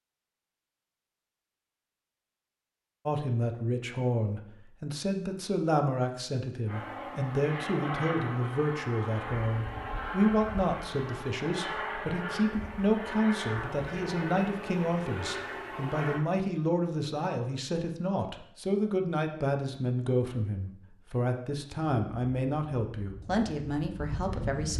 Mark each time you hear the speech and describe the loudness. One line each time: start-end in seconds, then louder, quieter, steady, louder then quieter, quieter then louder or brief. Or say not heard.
3.0-24.7 steady.